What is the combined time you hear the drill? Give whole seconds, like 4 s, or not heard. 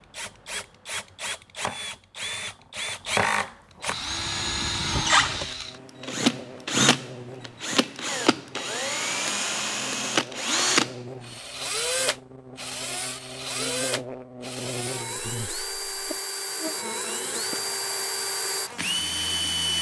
20 s.